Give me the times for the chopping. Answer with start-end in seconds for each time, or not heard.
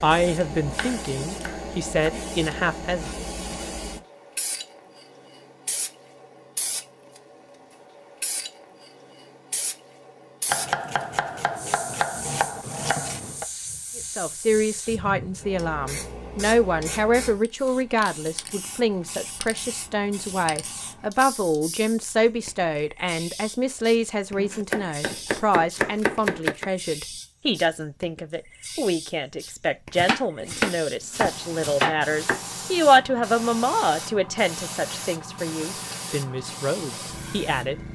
0.2-2.1, 10.4-13.4, 24.4-26.6, 29.9-32.4.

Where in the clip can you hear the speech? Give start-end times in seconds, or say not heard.
0.0-3.2, 13.9-37.8.